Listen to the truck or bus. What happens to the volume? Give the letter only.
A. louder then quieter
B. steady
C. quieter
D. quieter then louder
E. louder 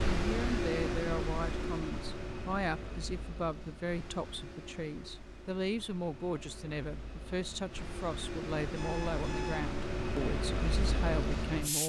D.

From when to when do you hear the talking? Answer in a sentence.
The talking can be heard from 0.1 to 11.8 s.